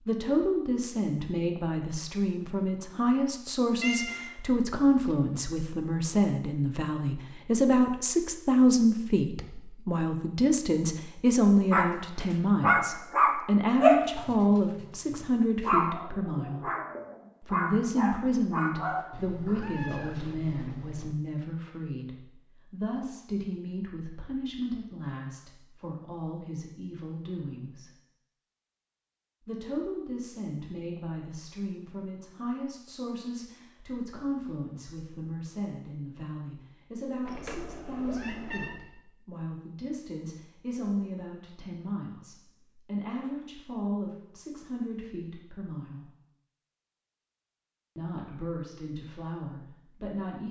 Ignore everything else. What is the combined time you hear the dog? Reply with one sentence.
You can hear the dog for 7 seconds altogether.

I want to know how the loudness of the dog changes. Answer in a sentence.
The volume of the dog goes down, then up.